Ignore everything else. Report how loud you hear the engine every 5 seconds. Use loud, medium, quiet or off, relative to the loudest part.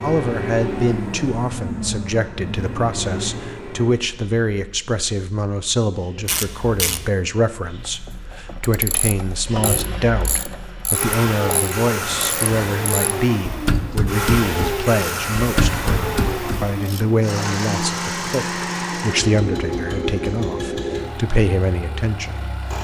loud, medium, loud, loud, loud.